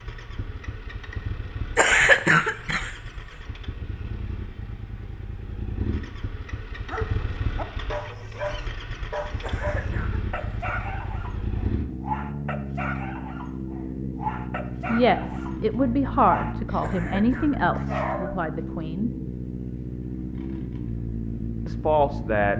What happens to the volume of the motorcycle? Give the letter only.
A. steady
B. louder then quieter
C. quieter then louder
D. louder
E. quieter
D.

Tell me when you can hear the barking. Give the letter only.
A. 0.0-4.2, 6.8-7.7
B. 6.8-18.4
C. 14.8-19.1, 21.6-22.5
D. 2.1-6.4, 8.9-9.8
B.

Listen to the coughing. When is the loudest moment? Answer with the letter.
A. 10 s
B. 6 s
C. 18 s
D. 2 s
D.